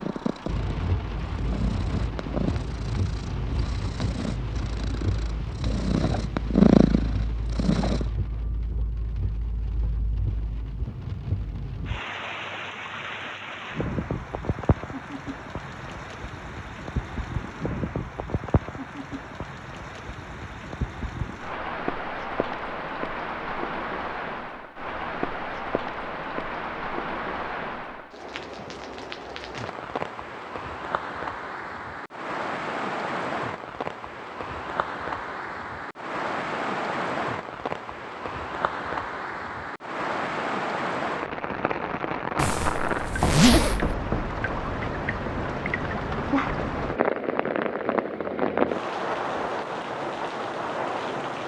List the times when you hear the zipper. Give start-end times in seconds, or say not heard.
42.4-44.0.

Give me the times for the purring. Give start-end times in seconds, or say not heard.
0.0-8.1.